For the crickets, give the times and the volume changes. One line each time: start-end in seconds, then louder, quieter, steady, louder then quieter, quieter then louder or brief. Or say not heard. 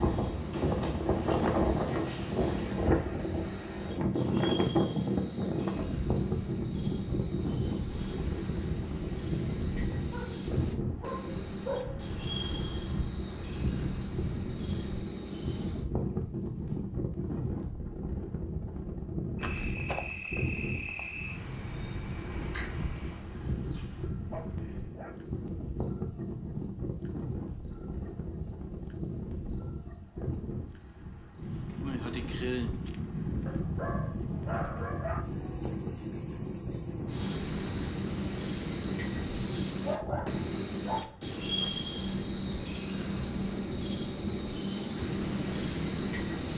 0.0-46.5 louder.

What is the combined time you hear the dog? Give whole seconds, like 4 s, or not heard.
8 s.